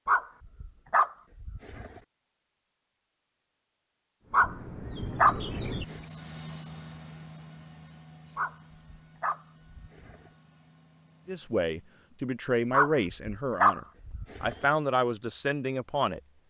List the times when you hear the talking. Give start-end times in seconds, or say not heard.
11.2-16.2.